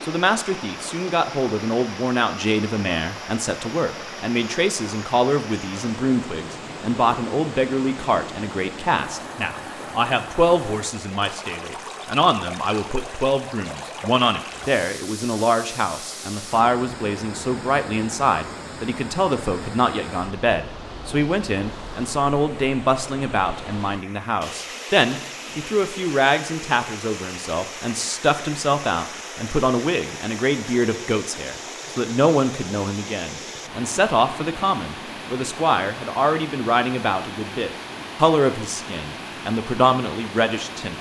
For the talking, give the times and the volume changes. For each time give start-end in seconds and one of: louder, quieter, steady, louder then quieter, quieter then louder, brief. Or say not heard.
0.0-40.9 steady.